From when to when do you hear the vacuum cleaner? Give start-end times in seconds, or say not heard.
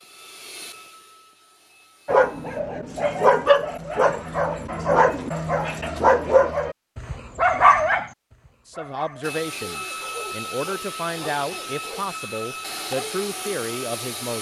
0.0-2.6, 9.2-14.3.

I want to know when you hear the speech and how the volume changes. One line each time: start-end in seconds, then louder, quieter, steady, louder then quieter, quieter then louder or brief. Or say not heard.
8.7-14.3 steady.